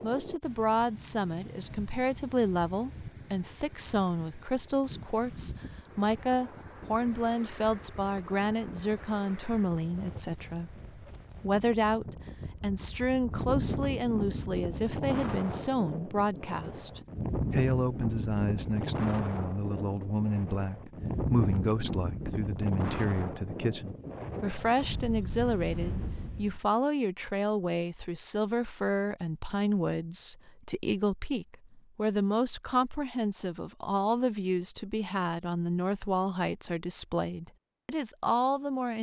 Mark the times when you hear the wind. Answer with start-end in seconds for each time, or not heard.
0.0-26.6.